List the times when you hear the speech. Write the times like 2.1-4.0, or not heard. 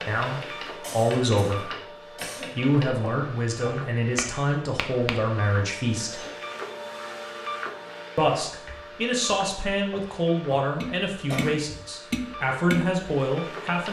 0.1-6.2, 8.2-13.8.